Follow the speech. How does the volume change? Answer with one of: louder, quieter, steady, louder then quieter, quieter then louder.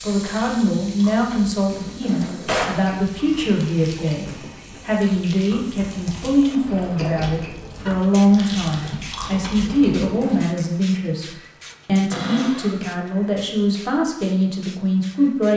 steady.